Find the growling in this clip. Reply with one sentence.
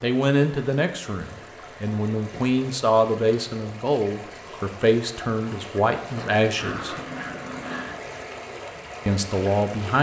The growling can be heard from 6.2 to 8.1 s.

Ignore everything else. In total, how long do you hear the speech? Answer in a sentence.
You can hear the speech for 8 seconds altogether.